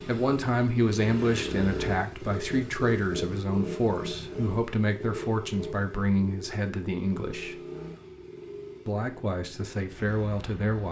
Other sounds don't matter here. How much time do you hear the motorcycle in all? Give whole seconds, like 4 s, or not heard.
11 s.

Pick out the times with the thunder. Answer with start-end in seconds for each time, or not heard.
not heard.